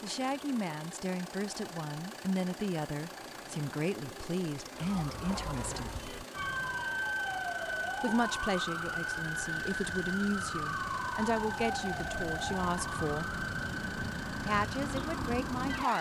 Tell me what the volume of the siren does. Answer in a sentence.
The loudness of the siren stays about the same.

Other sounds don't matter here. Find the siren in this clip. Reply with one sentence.
The siren can be heard from 4.8 to 15.9 s.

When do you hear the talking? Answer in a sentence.
The talking can be heard from 0.0 to 5.9 s, from 8.0 to 13.3 s and from 14.4 to 15.9 s.